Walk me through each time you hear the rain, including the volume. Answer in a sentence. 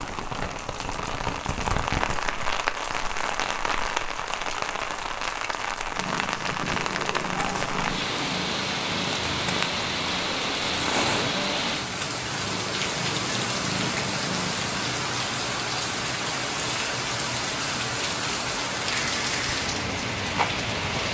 You can hear the rain from 0.0 to 21.1 s, at a steady volume.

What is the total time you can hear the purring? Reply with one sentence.
You can hear the purring for 9 seconds altogether.